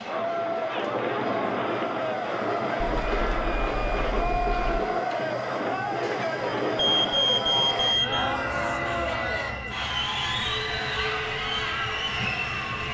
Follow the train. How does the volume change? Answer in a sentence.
The loudness of the train stays about the same.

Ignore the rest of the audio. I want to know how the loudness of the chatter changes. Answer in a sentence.
The loudness of the chatter stays about the same.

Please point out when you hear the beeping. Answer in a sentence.
You can hear the beeping from 2.9 to 4.8 s and from 6.8 to 8.3 s.